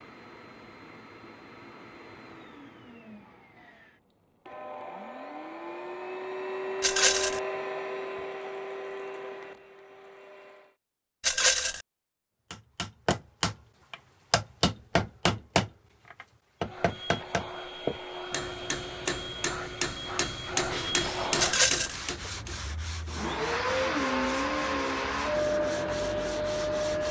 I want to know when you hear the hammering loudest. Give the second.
15 s.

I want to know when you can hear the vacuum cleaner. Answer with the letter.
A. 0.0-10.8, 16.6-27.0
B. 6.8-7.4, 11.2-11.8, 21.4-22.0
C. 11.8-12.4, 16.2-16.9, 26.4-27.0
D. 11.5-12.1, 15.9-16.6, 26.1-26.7
A.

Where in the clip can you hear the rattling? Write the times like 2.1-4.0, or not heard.
6.8-7.4, 11.2-11.8, 21.4-22.0.